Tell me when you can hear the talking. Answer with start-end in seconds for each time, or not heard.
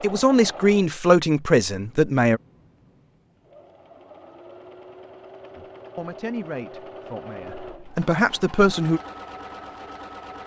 0.0-2.4, 5.5-9.0.